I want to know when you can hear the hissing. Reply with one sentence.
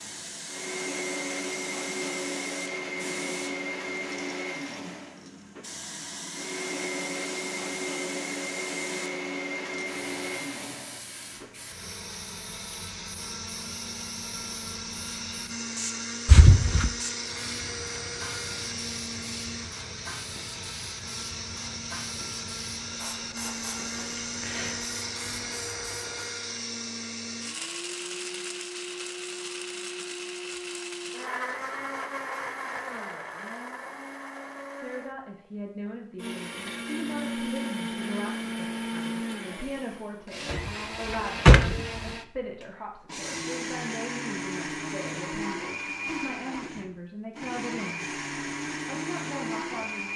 The hissing can be heard from 0.0 to 26.4 s.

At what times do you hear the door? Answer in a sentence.
You can hear the door from 16.2 to 16.9 s and from 40.5 to 41.9 s.